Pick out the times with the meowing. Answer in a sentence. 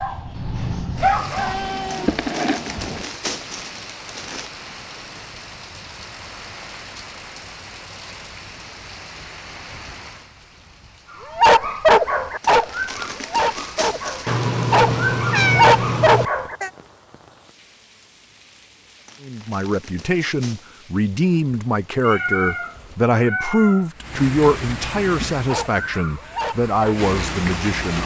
You can hear the meowing from 1.4 to 3.0 s, from 14.2 to 16.3 s and from 22.0 to 23.9 s.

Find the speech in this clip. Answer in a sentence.
The speech can be heard from 19.2 to 28.0 s.